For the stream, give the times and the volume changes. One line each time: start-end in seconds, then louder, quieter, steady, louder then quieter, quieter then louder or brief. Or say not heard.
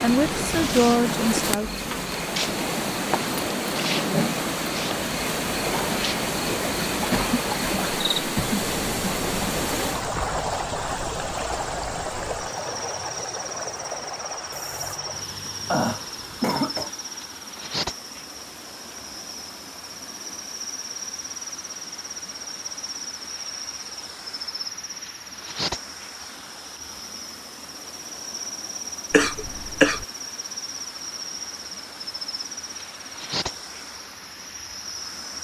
0.0-35.3 quieter.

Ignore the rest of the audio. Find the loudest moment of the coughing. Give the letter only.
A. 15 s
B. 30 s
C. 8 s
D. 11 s
B.